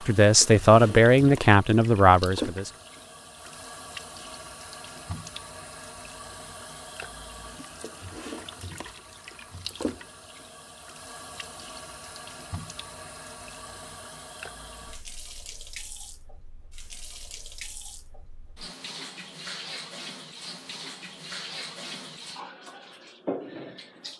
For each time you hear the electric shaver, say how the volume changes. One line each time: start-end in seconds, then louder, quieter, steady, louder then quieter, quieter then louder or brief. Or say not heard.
not heard.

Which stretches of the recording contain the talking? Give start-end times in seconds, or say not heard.
0.1-2.7.